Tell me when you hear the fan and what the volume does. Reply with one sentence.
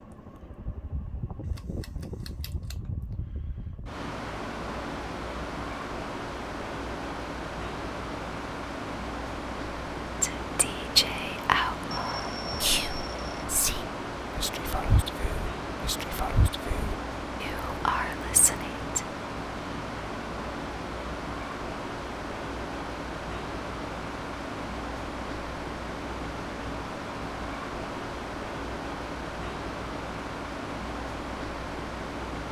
You can hear the fan from 0.0 to 32.4 s, at a steady volume.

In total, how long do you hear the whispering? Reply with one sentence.
You can hear the whispering for 9 seconds altogether.